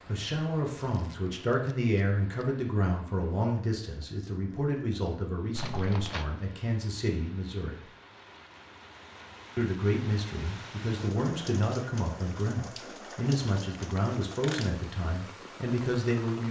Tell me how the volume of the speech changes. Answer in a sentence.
The volume of the speech stays about the same.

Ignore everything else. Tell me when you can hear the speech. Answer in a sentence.
The speech can be heard from 0.1 to 7.8 s and from 9.6 to 16.4 s.